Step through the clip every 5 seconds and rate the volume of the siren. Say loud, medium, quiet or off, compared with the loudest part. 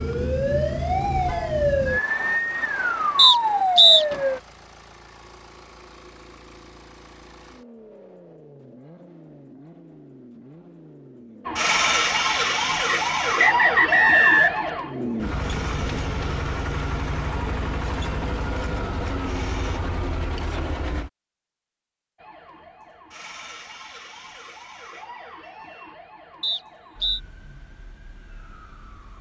loud, off, loud, quiet, quiet, quiet.